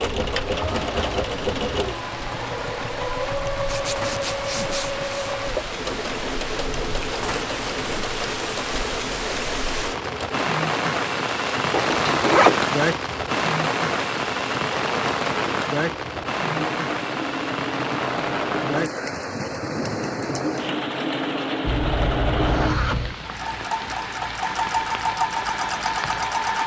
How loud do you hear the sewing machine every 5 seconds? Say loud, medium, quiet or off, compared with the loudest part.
loud, medium, medium, medium, loud, loud.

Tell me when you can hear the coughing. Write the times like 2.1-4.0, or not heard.
not heard.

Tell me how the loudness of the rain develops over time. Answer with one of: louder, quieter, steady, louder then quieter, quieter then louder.
louder then quieter.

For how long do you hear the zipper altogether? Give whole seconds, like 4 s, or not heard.
4 s.